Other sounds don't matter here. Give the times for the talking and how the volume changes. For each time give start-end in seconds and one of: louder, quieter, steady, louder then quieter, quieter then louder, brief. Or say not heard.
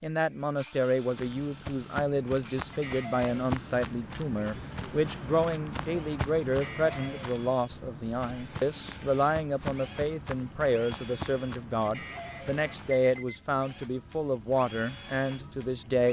0.0-16.0 steady.